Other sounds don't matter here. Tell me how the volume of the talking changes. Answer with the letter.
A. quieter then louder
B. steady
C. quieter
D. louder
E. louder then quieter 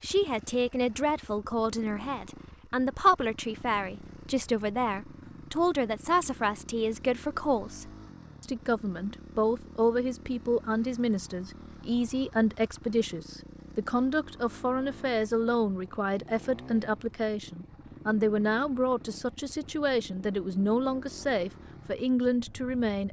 B.